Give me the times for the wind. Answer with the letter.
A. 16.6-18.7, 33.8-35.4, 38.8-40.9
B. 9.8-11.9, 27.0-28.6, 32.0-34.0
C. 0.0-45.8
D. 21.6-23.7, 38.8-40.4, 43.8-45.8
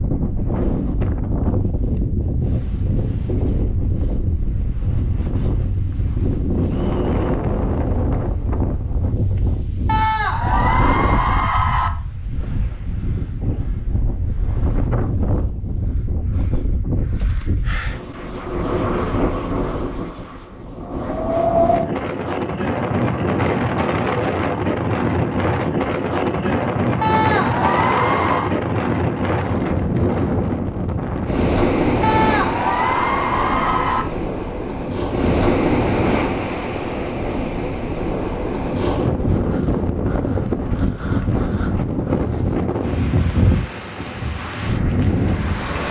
C.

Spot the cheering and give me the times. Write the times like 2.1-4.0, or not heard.
9.8-11.9, 27.0-28.6, 32.0-34.0.